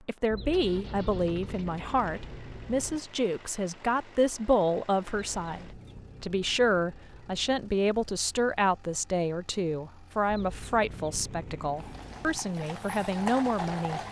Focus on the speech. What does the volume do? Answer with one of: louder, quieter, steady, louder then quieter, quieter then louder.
steady.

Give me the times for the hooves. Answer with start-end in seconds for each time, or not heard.
11.8-14.0.